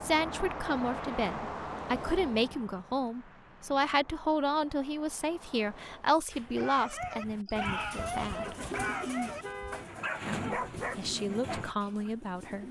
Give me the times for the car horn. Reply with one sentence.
You can hear the car horn from 8.4 to 9.9 s.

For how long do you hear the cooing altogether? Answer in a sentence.
You can hear the cooing for 6 seconds altogether.